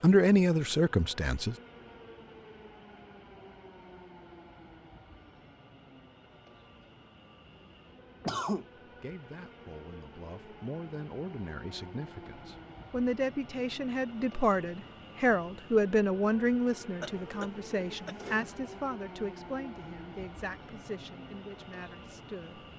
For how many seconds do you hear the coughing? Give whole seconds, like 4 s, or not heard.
2 s.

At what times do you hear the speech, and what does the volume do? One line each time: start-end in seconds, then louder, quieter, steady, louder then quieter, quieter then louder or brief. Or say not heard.
0.0-1.6 brief
8.8-22.7 louder then quieter.